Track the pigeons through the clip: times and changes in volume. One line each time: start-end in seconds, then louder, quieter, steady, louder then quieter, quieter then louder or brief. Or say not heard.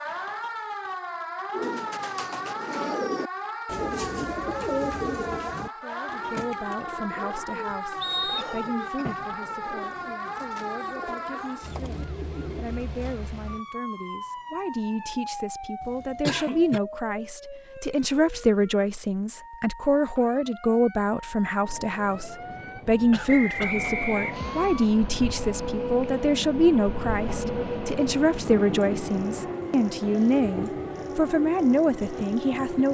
1.5-13.2 quieter.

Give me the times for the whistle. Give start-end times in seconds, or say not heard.
8.0-8.7, 23.2-24.6.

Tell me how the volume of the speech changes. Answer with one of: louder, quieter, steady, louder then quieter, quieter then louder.
louder.